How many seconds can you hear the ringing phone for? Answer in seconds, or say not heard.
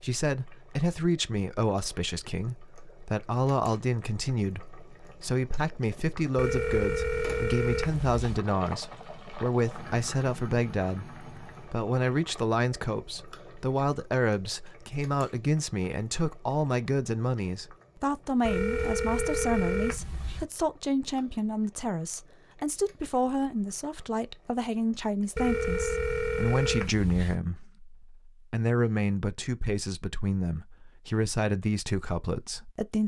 6 s.